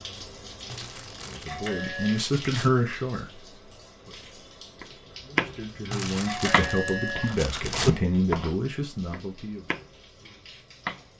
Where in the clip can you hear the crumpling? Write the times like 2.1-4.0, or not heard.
0.7-2.7, 5.9-7.9.